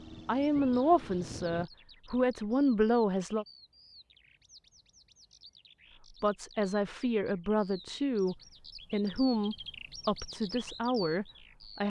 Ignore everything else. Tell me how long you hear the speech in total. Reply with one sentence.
The speech can be heard for 9 seconds in total.